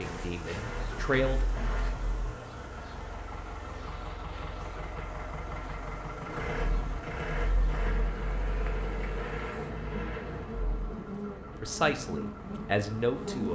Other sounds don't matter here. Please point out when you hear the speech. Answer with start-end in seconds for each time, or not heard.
0.0-1.7, 11.6-13.5.